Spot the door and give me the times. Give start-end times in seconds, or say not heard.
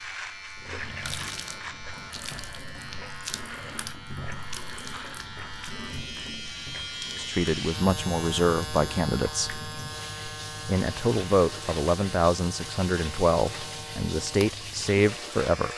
1.1-2.6.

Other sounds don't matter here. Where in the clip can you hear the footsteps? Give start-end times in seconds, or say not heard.
not heard.